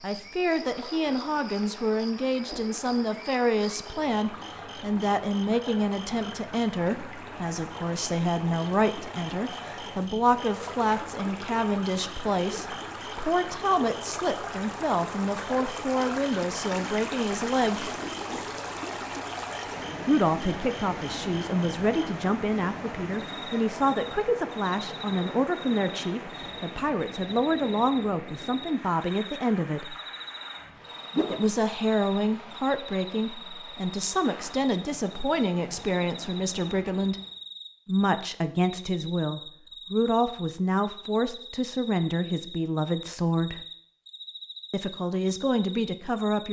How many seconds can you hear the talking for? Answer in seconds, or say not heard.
41 s.